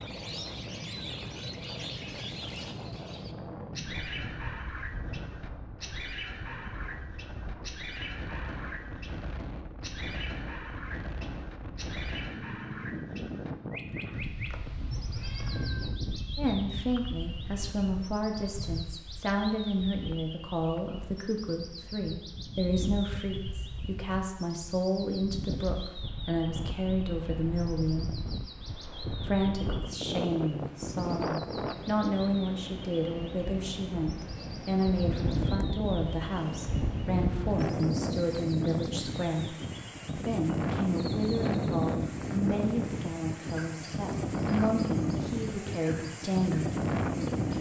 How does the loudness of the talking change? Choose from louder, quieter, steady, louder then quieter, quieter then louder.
steady.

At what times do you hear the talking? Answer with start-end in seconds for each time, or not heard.
16.4-28.1, 29.2-39.5, 40.1-46.8.